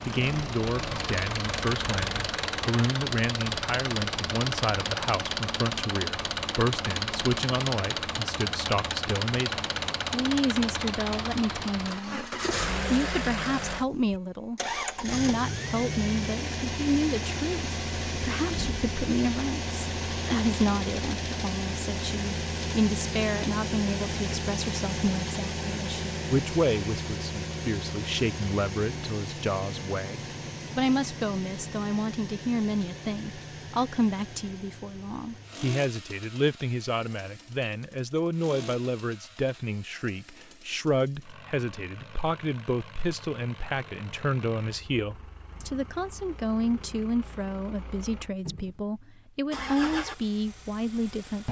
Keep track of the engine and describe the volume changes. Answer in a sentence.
The loudness of the engine goes down.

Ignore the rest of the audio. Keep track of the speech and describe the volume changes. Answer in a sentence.
The loudness of the speech stays about the same.